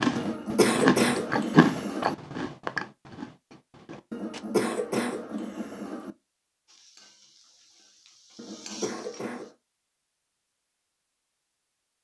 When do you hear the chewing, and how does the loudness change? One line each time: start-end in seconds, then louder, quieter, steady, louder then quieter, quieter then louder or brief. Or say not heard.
0.0-4.4 quieter.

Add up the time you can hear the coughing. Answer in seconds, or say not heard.
5 s.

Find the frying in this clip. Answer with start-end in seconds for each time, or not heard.
6.7-9.6.